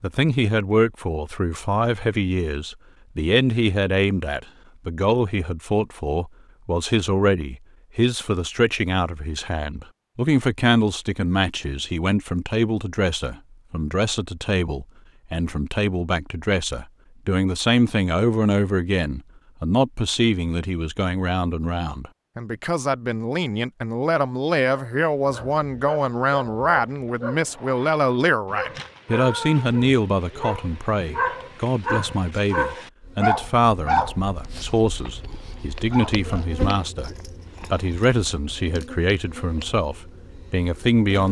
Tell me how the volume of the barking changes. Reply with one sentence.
The loudness of the barking goes up.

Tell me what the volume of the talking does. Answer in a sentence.
The volume of the talking stays about the same.